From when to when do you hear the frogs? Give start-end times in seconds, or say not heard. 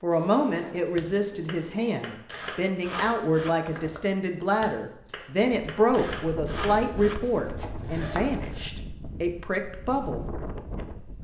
not heard.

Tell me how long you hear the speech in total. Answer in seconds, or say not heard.
10 s.